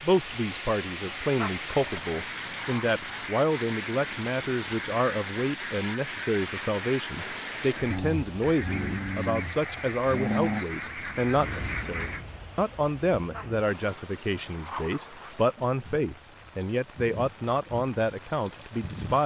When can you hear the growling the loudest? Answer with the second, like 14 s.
10 s.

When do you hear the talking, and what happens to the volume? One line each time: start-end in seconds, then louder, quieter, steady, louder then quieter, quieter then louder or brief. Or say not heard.
0.0-19.2 steady.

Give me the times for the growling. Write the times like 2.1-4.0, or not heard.
1.4-2.9, 7.9-10.7, 13.3-15.3.